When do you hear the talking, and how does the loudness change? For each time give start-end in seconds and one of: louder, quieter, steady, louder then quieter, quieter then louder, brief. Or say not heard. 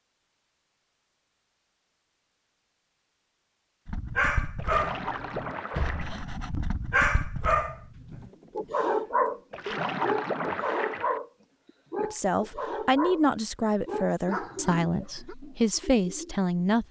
12.0-16.8 quieter then louder.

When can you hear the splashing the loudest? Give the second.
10 s.